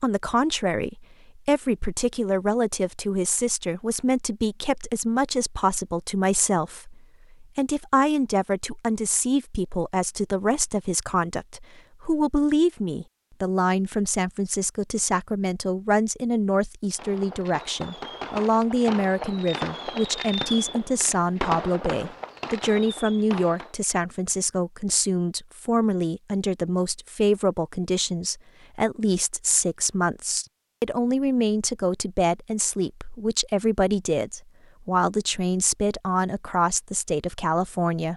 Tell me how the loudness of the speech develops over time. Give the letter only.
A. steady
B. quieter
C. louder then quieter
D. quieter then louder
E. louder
A.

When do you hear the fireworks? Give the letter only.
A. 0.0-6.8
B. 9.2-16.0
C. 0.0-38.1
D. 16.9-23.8
D.